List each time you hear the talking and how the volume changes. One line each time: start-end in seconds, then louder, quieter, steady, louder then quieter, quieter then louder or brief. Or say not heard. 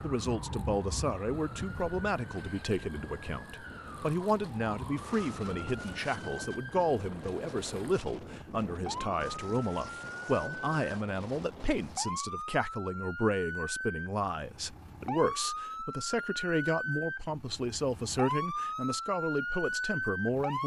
0.0-20.6 steady.